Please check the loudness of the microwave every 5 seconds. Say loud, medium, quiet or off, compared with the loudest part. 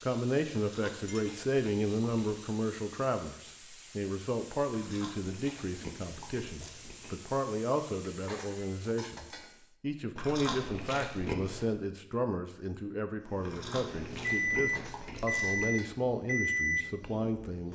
off, off, loud, loud.